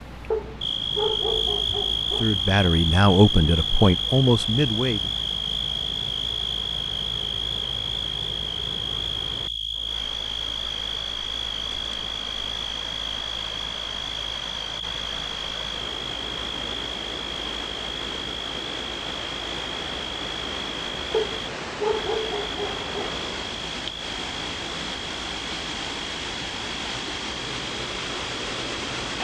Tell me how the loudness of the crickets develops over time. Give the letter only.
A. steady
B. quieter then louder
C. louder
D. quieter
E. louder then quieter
D.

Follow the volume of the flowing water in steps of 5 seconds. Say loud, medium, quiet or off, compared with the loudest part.
medium, medium, medium, loud, loud, loud.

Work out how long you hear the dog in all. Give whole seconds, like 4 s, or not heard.
4 s.